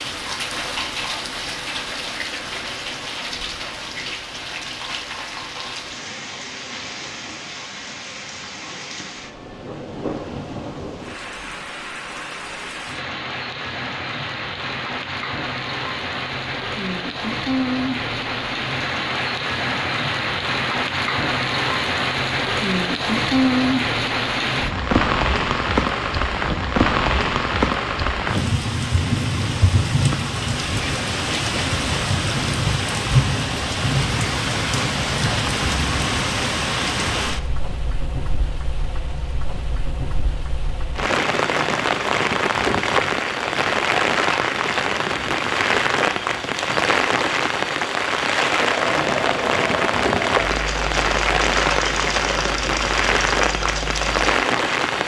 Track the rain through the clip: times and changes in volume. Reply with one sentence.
You can hear the rain from 0.0 to 55.0 s, getting louder.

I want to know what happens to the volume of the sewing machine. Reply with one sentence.
The volume of the sewing machine stays about the same.